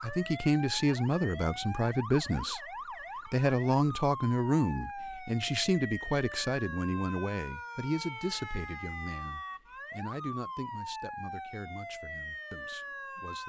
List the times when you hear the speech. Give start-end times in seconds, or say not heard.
0.0-2.6, 3.2-13.4.